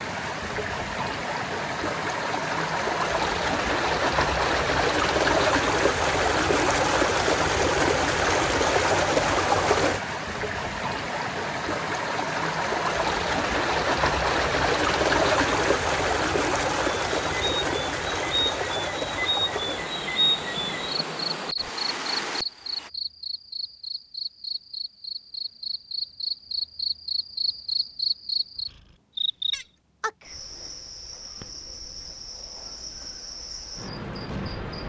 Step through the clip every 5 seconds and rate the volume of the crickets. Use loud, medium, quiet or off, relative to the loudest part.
off, off, off, loud, loud, loud, medium.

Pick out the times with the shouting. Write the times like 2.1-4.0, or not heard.
not heard.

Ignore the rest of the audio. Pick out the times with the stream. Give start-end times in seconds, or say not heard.
0.0-22.9.